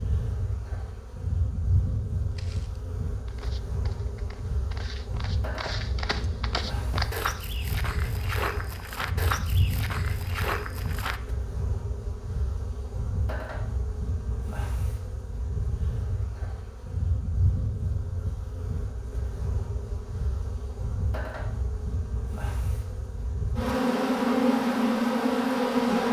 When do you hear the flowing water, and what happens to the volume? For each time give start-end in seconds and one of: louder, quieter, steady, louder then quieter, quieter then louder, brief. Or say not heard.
not heard.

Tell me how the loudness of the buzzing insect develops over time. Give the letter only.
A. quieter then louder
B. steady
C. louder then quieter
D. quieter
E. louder
E.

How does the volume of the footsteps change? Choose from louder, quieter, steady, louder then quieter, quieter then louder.
louder.